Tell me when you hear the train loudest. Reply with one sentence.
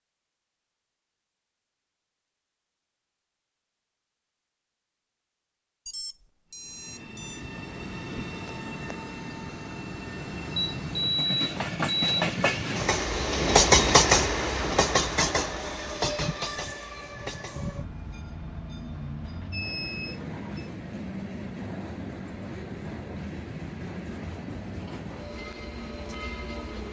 The loudest moment of the train is at 14 seconds.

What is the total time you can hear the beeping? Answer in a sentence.
You can hear the beeping for 5 seconds altogether.